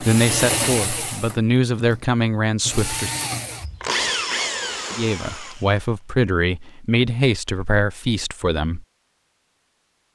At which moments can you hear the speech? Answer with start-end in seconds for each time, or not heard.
0.0-3.1, 5.0-8.8.